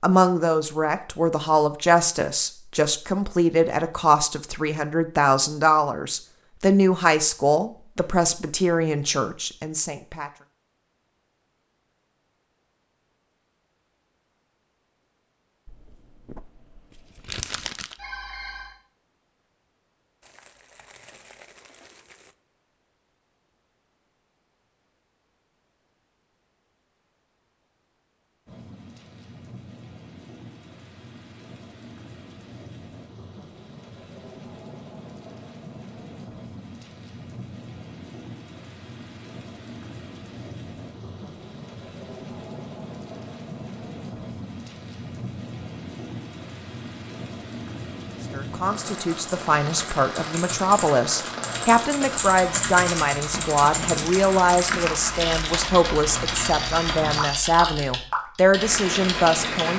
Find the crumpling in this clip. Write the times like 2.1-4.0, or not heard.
15.7-18.0, 20.2-22.4, 53.9-55.8.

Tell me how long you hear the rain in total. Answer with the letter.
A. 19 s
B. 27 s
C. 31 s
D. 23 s
C.